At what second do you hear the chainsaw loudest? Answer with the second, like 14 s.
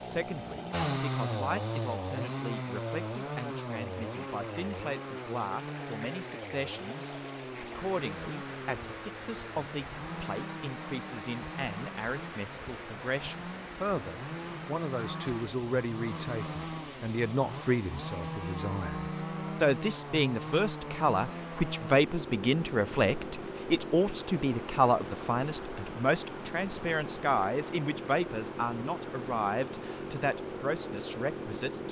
1 s.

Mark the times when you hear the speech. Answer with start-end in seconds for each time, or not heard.
0.0-31.8.